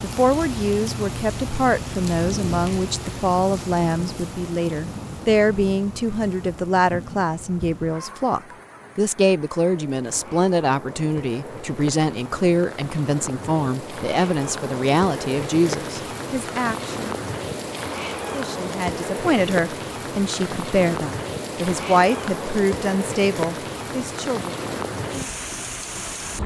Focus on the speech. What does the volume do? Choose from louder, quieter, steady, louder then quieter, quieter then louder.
steady.